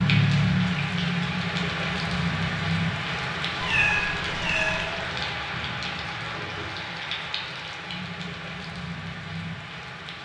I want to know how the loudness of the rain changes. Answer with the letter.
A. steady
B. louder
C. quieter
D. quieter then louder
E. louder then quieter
C.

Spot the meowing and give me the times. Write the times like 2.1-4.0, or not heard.
3.5-4.8.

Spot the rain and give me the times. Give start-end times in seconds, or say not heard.
0.0-10.1.